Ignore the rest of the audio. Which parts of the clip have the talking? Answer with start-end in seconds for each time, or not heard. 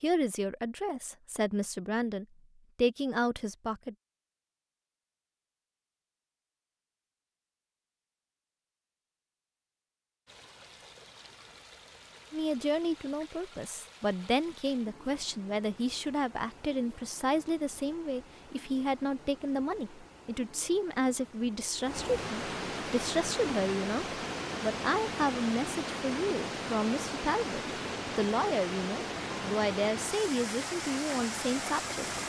0.0-4.0, 12.3-32.2.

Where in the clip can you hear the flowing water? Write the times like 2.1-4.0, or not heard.
10.2-32.2.